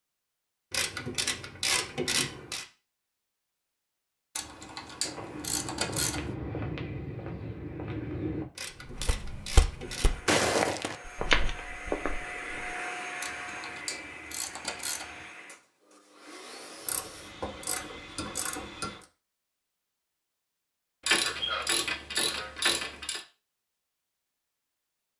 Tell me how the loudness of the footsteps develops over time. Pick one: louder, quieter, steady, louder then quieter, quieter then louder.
louder.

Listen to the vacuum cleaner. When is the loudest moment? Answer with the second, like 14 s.
13 s.